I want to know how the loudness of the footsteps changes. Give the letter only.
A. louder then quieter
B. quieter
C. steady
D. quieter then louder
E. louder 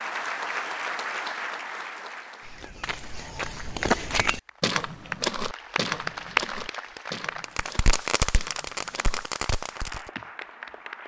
B.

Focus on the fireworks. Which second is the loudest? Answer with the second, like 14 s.
8 s.